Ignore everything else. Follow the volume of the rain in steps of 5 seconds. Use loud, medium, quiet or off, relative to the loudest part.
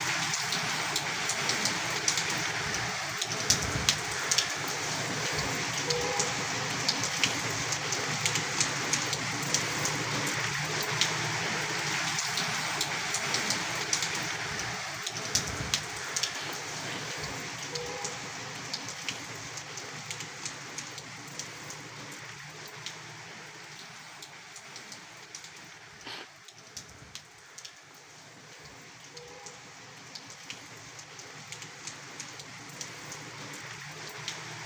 loud, loud, loud, medium, quiet, quiet, quiet.